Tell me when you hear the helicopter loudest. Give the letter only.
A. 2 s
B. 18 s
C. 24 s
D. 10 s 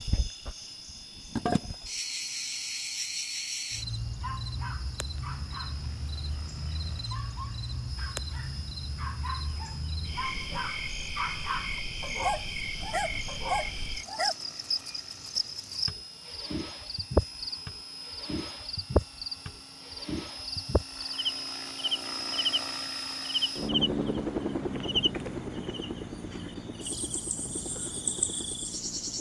C.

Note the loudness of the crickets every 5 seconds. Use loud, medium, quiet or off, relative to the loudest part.
loud, medium, loud, loud, loud, medium.